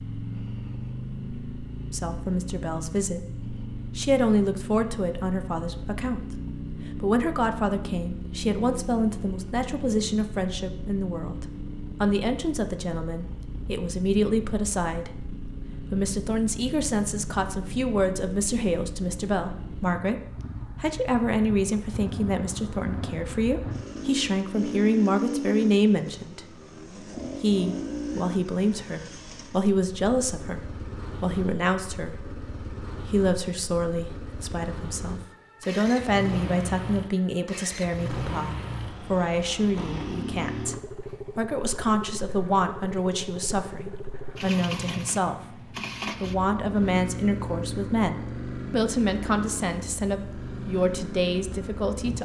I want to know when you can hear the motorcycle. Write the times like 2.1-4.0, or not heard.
0.0-52.2.